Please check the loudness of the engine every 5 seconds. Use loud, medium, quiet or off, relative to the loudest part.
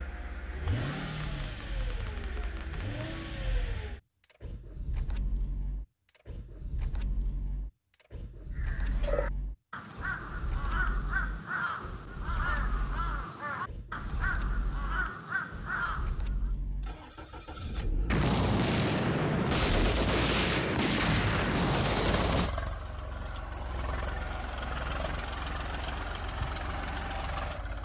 loud, medium, medium, medium, loud, loud.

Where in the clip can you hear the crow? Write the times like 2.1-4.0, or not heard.
8.6-16.5.